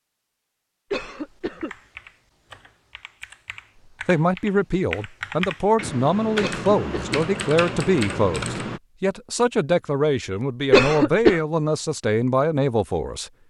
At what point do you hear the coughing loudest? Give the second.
11 s.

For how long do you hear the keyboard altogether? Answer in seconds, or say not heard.
8 s.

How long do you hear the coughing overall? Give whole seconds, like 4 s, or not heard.
2 s.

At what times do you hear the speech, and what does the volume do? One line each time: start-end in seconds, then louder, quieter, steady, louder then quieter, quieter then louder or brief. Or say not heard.
4.0-13.3 steady.